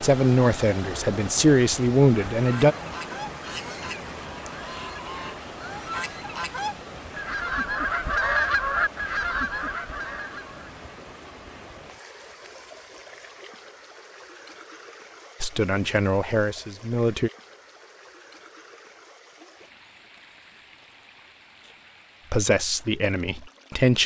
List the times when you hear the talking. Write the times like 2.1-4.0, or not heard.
0.0-2.8, 15.4-17.3, 22.3-24.0.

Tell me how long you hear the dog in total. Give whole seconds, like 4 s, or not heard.
not heard.